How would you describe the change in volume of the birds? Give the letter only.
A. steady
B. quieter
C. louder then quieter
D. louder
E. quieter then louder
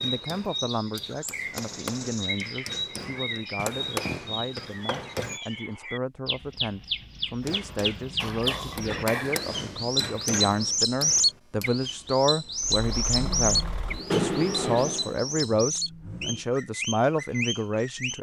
C.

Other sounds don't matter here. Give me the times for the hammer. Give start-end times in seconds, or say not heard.
0.0-5.4, 7.4-11.7.